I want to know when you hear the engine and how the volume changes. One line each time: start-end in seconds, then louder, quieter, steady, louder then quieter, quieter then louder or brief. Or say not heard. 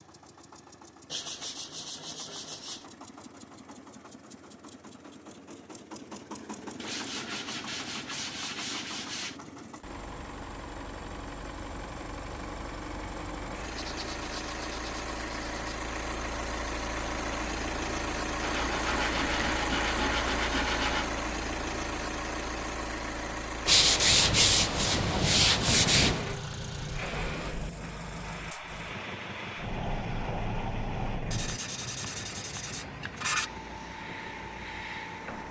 0.0-35.4 louder then quieter.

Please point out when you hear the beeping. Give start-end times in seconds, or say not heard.
not heard.